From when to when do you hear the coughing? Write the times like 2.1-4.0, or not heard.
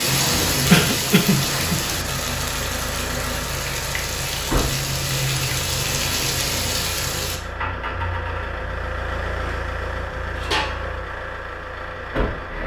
0.7-1.8.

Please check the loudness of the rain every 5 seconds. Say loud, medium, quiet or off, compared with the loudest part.
loud, loud, off.